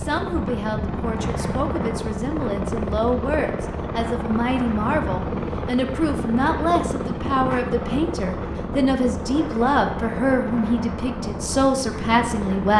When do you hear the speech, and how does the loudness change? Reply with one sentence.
You can hear the speech from 0.0 to 12.7 s, getting louder.